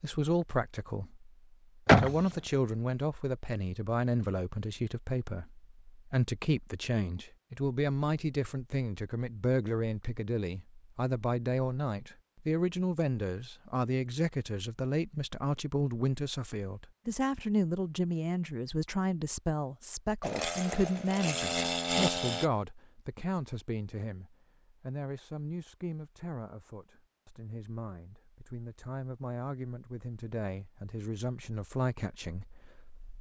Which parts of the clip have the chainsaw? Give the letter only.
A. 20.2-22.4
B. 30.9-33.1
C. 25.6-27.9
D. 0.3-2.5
A.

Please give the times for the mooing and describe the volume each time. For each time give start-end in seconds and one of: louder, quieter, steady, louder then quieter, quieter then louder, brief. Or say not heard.
not heard.